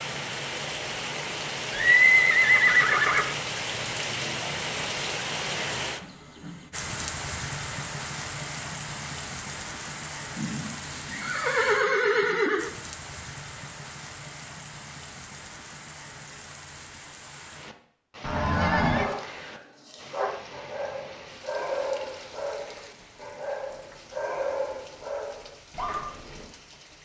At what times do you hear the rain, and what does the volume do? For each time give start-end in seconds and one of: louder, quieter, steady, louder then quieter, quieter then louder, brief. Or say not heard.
0.0-27.0 quieter.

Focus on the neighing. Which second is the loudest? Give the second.
2 s.